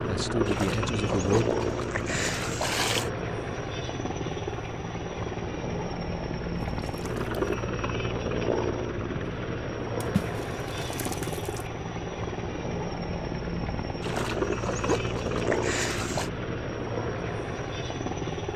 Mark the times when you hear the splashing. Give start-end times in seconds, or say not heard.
0.5-3.1, 6.6-7.5, 10.0-11.7, 14.0-16.3.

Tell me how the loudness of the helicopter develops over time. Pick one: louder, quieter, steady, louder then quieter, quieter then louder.
steady.